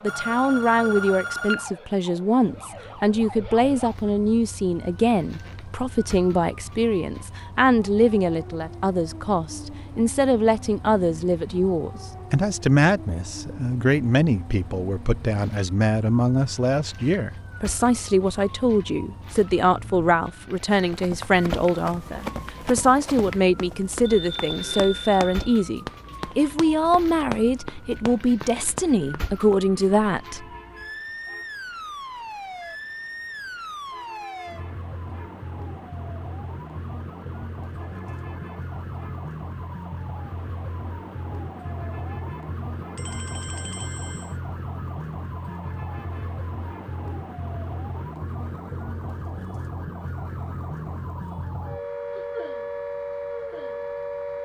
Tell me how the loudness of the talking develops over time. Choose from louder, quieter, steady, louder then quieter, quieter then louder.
steady.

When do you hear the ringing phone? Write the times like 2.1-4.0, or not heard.
0.1-1.7, 24.1-25.6, 43.0-44.4.